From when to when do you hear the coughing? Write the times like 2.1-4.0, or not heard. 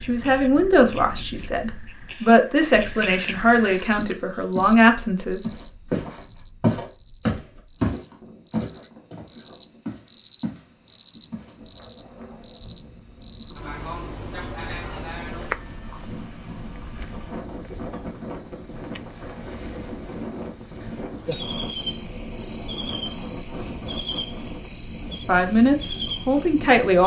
not heard.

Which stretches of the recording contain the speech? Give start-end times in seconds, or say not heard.
0.0-5.4, 25.2-27.0.